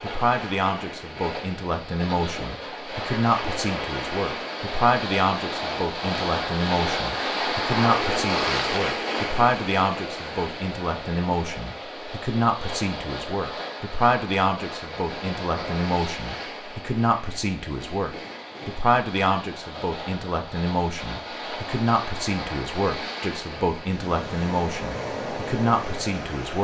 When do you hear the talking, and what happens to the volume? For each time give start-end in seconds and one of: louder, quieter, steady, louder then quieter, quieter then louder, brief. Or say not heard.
0.0-26.6 steady.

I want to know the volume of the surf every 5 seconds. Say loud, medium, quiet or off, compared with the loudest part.
medium, loud, medium, medium, medium, medium.